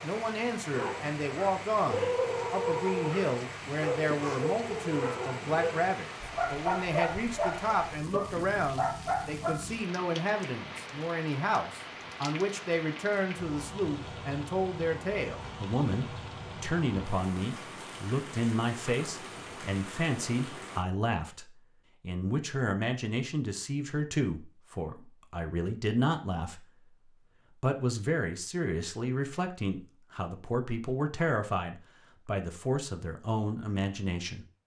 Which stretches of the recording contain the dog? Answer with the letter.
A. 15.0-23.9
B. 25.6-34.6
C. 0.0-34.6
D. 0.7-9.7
D.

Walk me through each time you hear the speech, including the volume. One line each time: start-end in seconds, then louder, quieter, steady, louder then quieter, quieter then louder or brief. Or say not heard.
0.0-34.6 steady.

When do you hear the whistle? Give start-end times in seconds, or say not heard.
not heard.